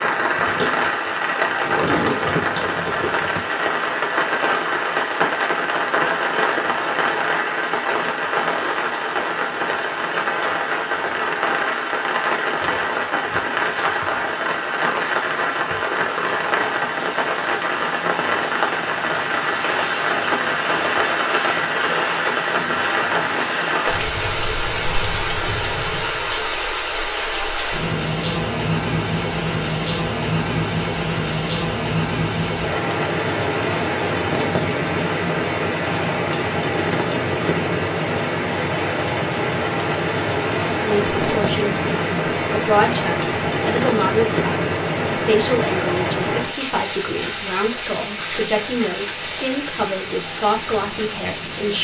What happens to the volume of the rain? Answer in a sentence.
The loudness of the rain stays about the same.